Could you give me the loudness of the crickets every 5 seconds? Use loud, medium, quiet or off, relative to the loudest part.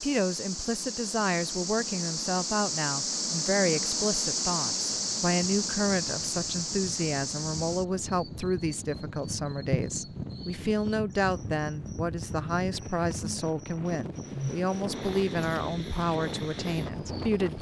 loud, loud, medium, quiet.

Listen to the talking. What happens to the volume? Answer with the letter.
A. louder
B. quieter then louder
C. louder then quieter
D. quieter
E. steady
E.